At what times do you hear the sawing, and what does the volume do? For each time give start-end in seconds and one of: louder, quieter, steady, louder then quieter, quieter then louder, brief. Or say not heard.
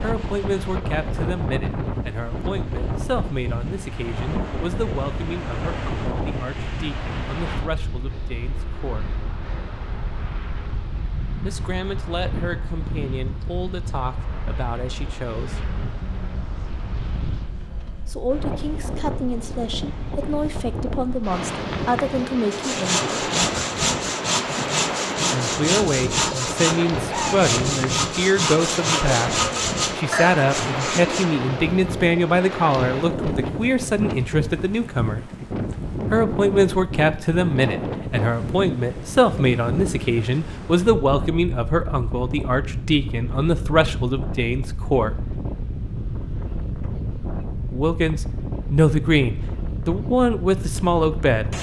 22.5-31.2 steady.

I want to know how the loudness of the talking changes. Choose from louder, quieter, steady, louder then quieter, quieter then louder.
louder.